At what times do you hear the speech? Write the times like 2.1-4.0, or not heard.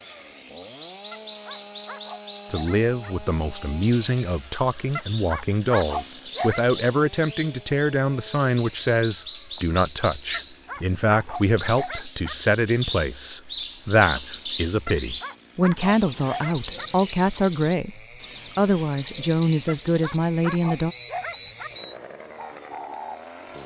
2.5-20.9.